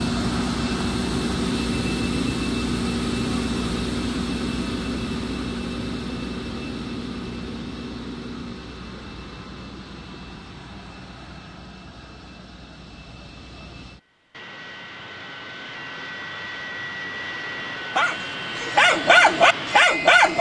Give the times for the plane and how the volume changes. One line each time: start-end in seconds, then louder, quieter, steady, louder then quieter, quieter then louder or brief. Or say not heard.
0.0-20.3 quieter then louder.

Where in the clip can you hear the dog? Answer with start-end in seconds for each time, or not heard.
17.9-20.3.